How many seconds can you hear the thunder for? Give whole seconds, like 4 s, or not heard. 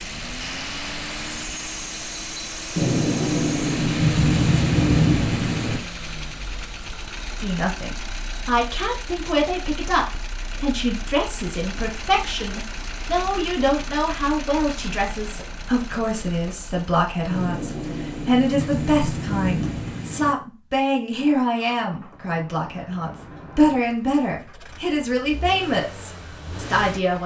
6 s.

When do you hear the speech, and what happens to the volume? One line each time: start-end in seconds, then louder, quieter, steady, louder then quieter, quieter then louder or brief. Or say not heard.
7.4-27.2 steady.